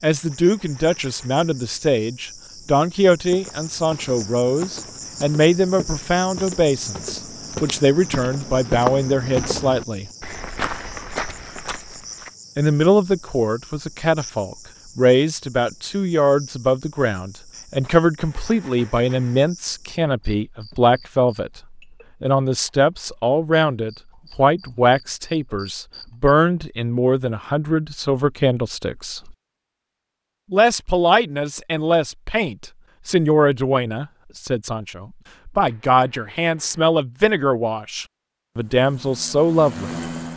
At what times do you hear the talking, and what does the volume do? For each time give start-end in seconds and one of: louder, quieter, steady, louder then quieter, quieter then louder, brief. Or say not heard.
0.0-10.1 steady
12.6-29.4 steady
30.5-40.0 steady.